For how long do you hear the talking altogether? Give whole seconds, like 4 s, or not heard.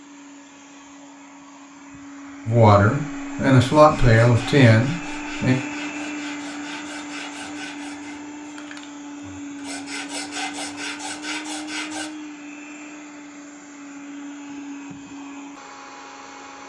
3 s.